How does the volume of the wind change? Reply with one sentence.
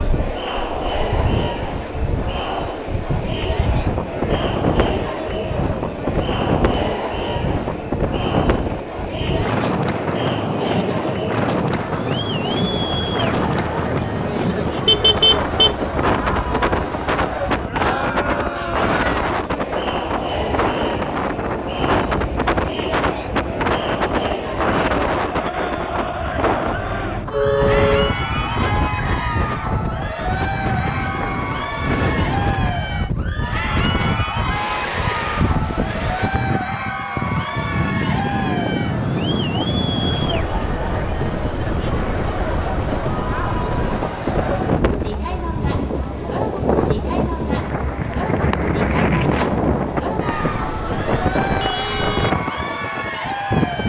The volume of the wind stays about the same.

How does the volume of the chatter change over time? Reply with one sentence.
The loudness of the chatter stays about the same.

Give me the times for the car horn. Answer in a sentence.
You can hear the car horn from 14.8 to 15.8 s, from 27.2 to 28.1 s and from 50.3 to 52.3 s.